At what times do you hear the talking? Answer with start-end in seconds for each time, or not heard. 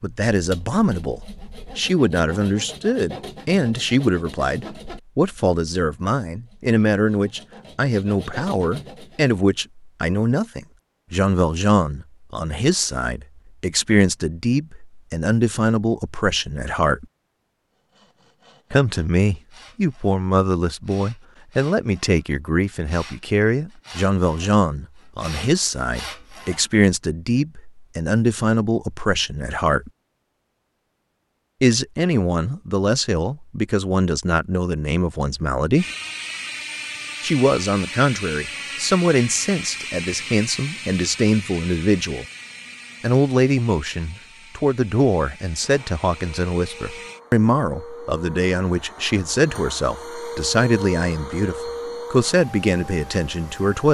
0.0-17.1, 18.7-29.9, 31.6-35.9, 37.2-42.2, 43.0-53.8.